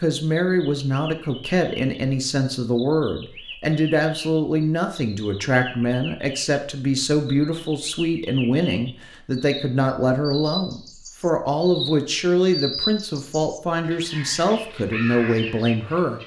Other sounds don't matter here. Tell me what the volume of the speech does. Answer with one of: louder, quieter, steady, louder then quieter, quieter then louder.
steady.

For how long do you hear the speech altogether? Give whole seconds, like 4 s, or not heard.
16 s.